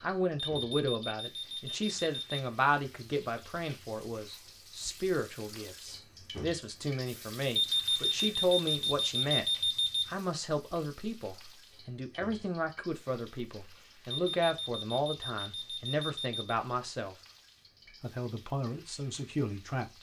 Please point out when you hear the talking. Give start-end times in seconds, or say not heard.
0.0-9.4, 10.1-17.1, 18.0-19.9.